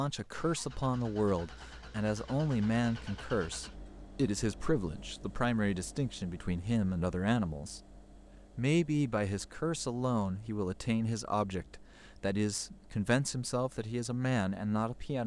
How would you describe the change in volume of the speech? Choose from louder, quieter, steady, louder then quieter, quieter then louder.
steady.